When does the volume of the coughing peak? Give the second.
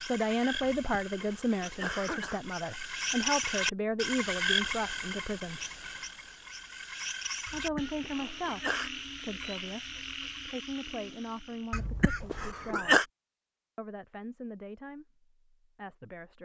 13 s.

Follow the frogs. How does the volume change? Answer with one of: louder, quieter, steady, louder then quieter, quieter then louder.
louder then quieter.